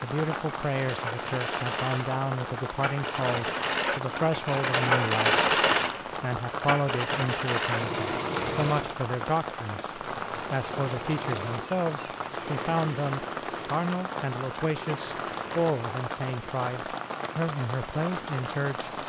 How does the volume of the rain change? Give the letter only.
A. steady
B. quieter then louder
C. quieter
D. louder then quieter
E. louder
A.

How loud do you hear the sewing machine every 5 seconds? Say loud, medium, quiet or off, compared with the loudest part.
loud, loud, quiet, quiet.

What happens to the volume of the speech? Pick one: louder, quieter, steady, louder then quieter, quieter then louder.
steady.